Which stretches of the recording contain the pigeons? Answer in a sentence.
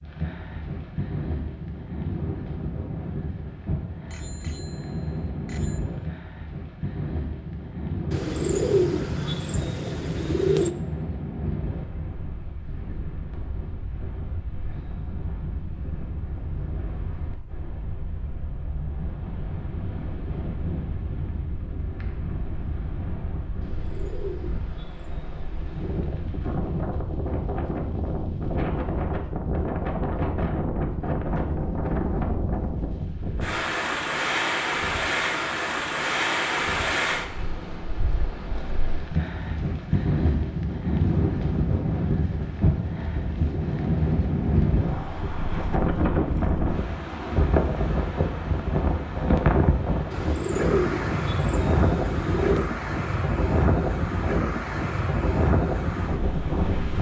The pigeons can be heard from 8.1 to 10.7 s, from 23.6 to 26.1 s and from 50.1 to 52.6 s.